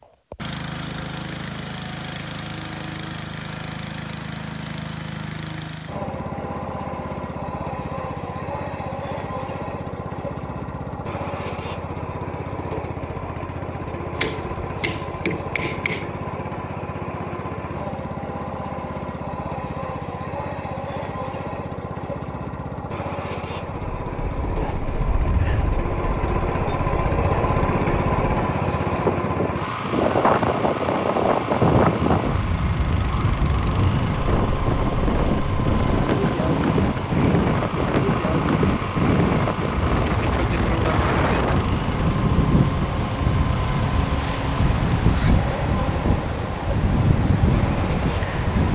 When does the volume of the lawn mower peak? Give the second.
28 s.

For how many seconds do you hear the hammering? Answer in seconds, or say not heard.
2 s.